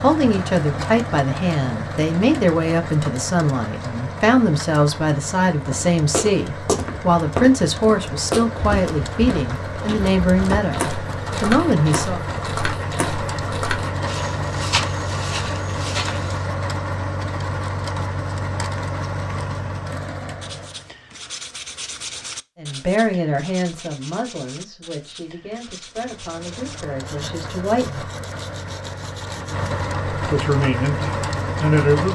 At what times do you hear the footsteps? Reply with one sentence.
The footsteps can be heard from 5.5 to 16.4 s.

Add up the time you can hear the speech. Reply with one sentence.
You can hear the speech for 20 seconds altogether.